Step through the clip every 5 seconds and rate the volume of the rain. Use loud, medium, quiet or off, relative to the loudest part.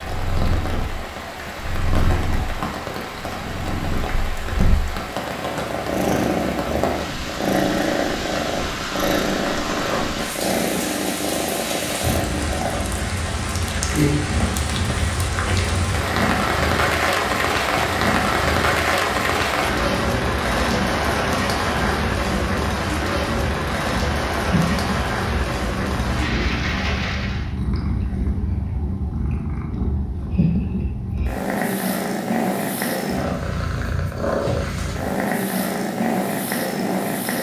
medium, medium, medium, loud, loud, medium, off, off.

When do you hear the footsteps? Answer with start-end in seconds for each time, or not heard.
not heard.